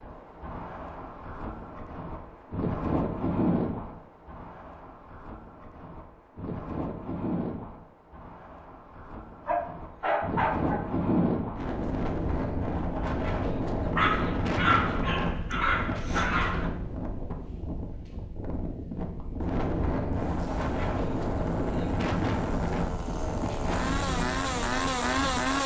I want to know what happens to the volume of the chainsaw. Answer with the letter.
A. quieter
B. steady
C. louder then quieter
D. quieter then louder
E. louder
E.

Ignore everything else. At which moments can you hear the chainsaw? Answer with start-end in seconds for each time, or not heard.
20.1-25.6.